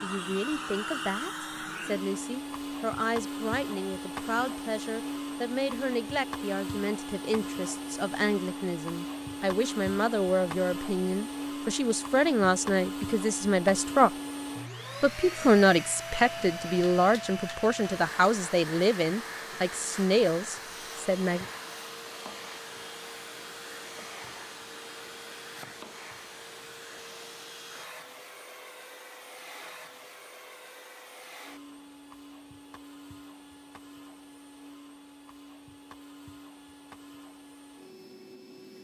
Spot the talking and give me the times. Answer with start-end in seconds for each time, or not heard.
0.0-14.1, 15.0-21.4.